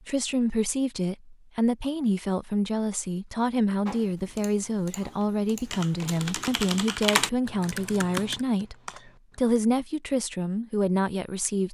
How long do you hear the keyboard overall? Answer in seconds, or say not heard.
6 s.